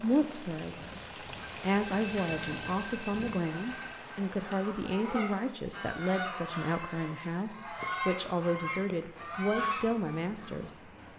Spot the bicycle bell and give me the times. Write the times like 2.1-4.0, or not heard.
1.6-4.0, 6.4-7.0.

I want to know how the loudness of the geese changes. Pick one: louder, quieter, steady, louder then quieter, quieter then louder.
louder.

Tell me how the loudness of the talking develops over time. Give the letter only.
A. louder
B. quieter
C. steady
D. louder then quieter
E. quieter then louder
C.